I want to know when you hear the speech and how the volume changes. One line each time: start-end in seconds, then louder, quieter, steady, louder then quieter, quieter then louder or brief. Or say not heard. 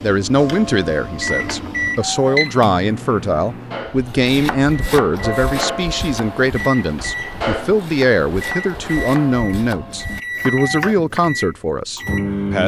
0.0-12.6 steady.